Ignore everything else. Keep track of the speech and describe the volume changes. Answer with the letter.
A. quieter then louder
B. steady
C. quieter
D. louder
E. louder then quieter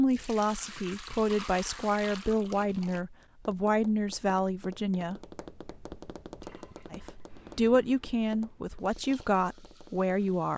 B.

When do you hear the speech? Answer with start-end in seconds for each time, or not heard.
0.0-5.2, 6.9-10.5.